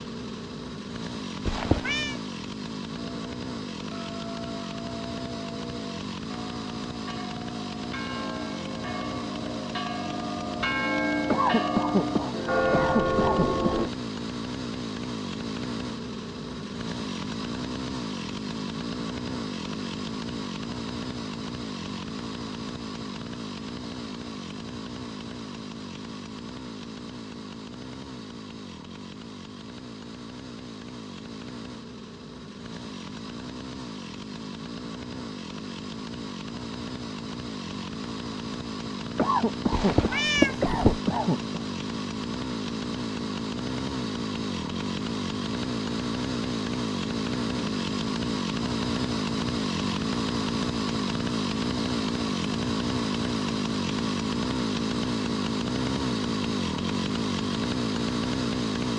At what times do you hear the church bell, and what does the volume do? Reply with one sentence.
You can hear the church bell from 2.9 to 13.9 s, getting louder.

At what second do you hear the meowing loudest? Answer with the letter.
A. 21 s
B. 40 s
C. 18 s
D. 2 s
B.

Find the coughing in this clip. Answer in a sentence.
You can hear the coughing from 11.3 to 13.8 s and from 39.1 to 41.5 s.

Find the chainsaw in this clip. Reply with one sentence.
You can hear the chainsaw from 0.0 to 58.9 s.